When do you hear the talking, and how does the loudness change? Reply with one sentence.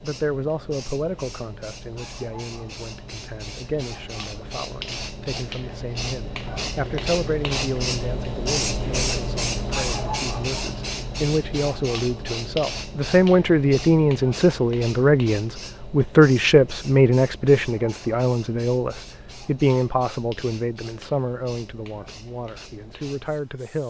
You can hear the talking from 0.0 to 23.8 s, getting louder then quieter.